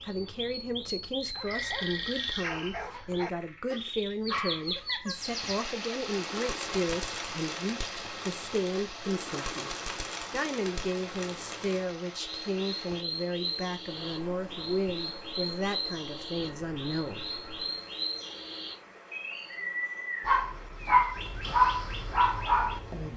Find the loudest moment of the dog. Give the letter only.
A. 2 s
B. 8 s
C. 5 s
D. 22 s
D.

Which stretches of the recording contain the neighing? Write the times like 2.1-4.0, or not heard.
1.4-2.9, 16.4-17.9.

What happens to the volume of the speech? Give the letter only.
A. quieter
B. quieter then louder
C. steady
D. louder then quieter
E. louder
C.